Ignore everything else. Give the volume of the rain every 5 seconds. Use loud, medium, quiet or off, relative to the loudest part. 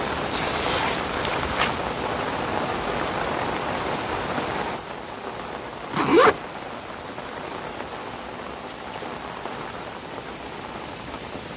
loud, medium, medium.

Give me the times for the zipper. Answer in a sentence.
You can hear the zipper from 0.3 to 1.8 s and from 5.9 to 6.3 s.